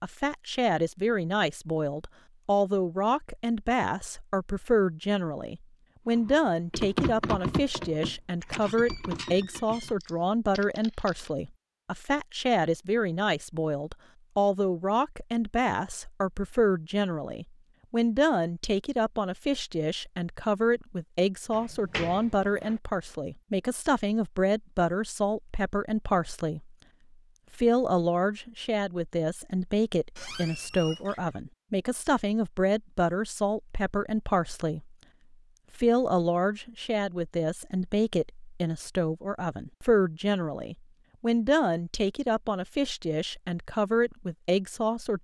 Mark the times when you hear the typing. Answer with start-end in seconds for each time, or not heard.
6.1-11.3.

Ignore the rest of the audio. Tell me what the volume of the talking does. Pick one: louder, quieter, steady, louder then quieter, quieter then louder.
steady.